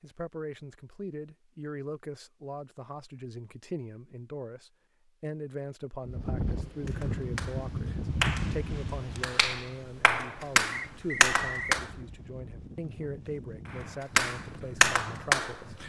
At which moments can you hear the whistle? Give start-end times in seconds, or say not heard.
10.7-11.8.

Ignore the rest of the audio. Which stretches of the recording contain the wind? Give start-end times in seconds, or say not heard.
6.0-15.8.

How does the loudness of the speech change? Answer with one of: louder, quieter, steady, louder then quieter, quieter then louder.
steady.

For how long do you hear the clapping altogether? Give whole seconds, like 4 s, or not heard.
6 s.